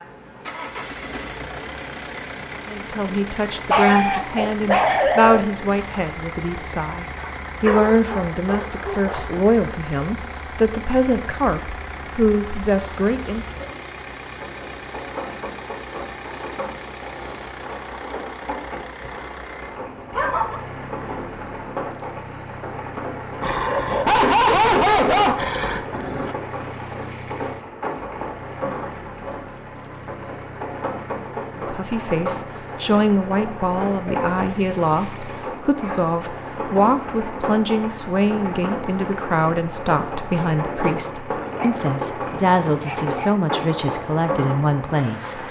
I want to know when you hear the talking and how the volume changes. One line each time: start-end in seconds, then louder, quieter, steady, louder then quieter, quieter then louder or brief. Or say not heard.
2.6-13.4 steady
31.6-45.4 steady.